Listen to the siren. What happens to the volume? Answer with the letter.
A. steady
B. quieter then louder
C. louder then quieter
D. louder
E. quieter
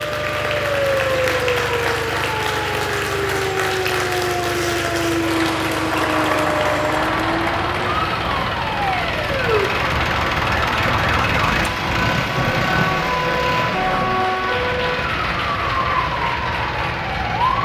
A.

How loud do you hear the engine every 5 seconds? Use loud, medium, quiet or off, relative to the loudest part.
medium, loud, loud, medium.